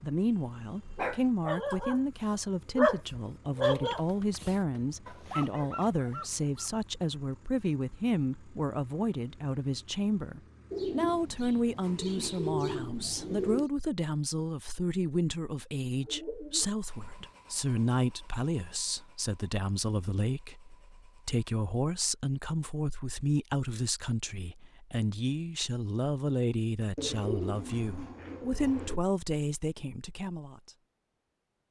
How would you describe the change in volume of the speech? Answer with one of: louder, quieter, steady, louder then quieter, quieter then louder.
steady.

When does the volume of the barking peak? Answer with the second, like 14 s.
3 s.